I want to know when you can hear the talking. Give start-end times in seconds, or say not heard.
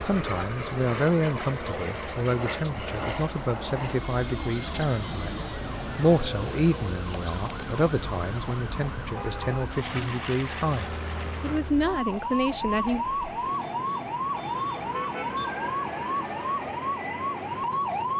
0.0-13.1.